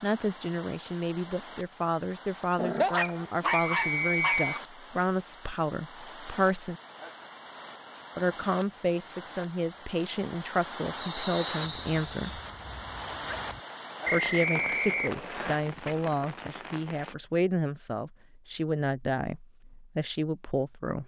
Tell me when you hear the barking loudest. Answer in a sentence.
The volume of the barking peaks at 3 seconds.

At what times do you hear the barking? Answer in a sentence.
The barking can be heard from 2.5 to 4.6 s and from 11.6 to 13.6 s.